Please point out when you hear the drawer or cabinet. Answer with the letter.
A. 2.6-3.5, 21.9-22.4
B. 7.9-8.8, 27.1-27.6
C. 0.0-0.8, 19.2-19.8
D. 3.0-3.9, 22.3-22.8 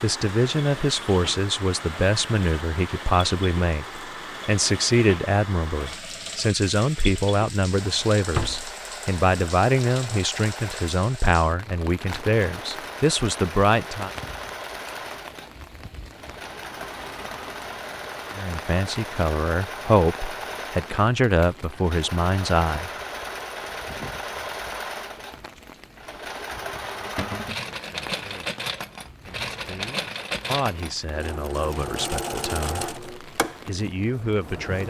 B.